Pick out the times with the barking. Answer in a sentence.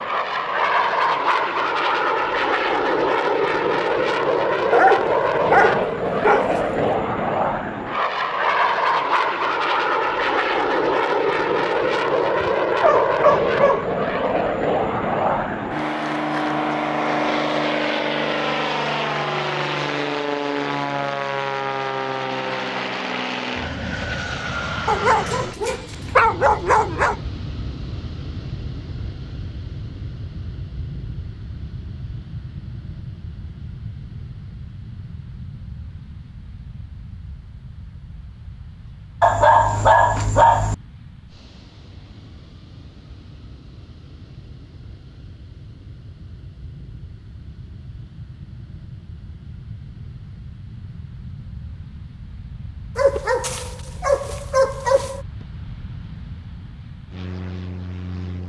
You can hear the barking from 4.7 to 7.0 s, from 12.4 to 13.9 s, from 24.9 to 27.1 s, from 39.2 to 40.8 s and from 53.0 to 55.2 s.